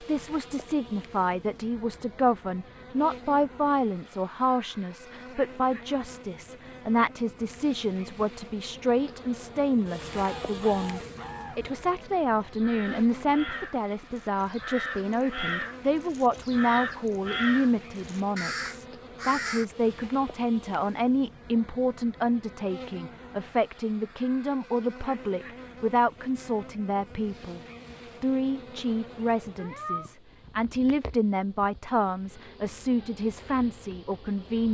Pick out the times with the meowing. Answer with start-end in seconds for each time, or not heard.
29.1-30.1.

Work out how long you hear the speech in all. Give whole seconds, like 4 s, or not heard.
34 s.